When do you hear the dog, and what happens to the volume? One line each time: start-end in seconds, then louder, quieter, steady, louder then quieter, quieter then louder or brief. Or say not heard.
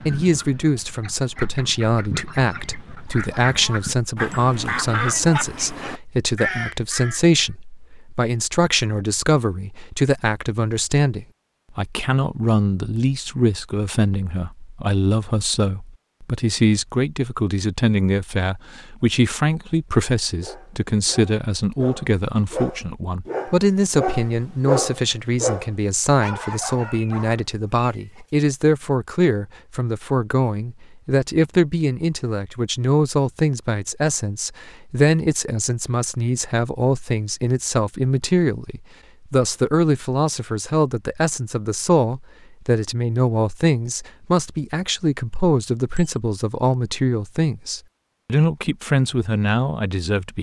20.4-28.3 louder then quieter.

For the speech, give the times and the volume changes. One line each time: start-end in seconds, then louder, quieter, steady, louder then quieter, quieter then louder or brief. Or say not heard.
0.1-50.3 steady.